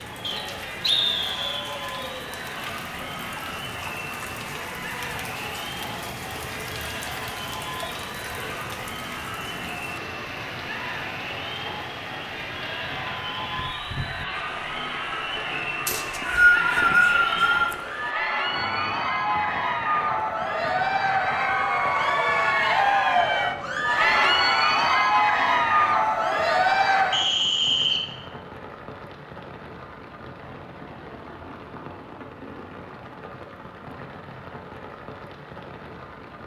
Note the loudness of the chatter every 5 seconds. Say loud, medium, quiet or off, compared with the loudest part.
quiet, quiet, quiet, medium, loud, loud, off, off.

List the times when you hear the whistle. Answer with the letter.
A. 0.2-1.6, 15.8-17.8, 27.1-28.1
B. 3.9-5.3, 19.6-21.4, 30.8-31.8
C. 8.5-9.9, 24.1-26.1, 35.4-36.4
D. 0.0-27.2
A.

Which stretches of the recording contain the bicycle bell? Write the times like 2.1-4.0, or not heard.
not heard.